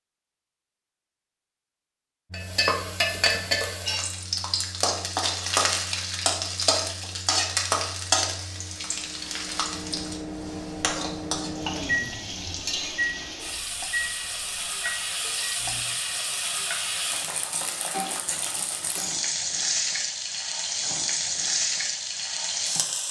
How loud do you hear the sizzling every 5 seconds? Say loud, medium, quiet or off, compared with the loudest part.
loud, loud, medium, loud, loud.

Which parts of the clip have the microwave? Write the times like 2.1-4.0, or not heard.
2.3-15.8.